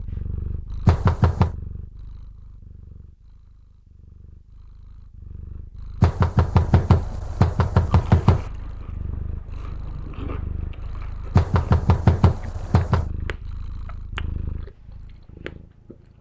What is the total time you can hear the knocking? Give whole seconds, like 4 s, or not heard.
5 s.